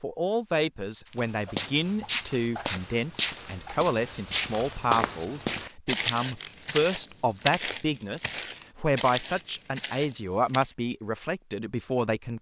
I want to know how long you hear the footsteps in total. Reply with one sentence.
The footsteps can be heard for 10 seconds in total.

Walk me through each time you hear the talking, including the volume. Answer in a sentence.
The talking can be heard from 0.0 to 12.3 s, at a steady volume.